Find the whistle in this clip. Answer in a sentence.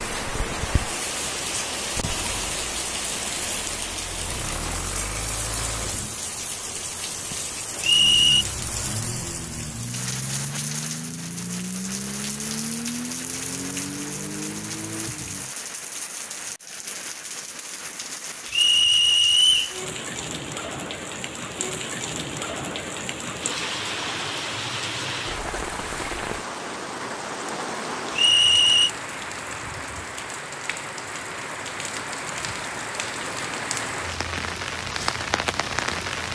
You can hear the whistle from 7.8 to 8.4 s, from 18.5 to 19.8 s and from 28.1 to 28.9 s.